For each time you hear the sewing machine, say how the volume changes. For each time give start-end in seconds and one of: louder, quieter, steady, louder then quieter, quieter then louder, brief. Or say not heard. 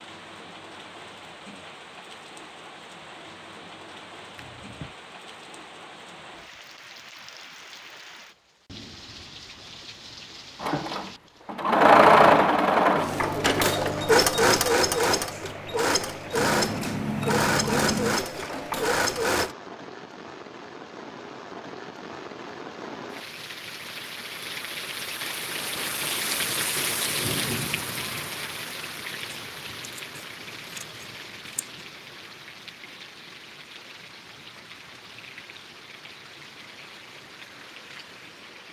10.6-19.6 quieter.